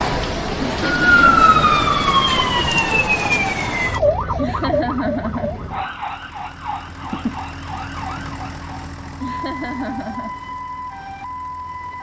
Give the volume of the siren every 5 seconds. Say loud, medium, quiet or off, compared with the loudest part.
loud, quiet, quiet.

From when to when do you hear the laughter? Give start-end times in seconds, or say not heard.
0.7-1.6, 4.3-5.5, 9.2-10.3.